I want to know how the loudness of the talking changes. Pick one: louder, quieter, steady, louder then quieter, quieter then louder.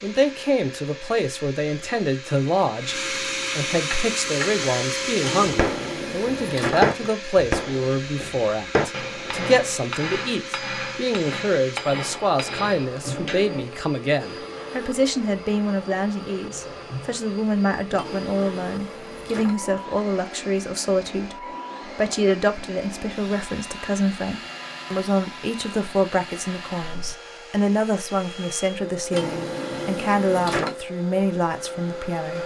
steady.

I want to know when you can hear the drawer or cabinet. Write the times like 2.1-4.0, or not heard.
5.2-7.1, 17.9-19.8, 29.1-30.8.